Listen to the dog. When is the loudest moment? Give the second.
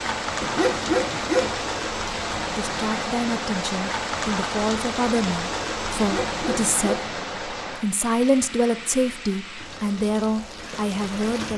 1 s.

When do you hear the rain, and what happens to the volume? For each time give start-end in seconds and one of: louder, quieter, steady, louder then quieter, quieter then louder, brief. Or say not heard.
0.0-11.5 quieter.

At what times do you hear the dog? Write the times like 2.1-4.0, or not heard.
0.4-1.6, 6.0-7.2.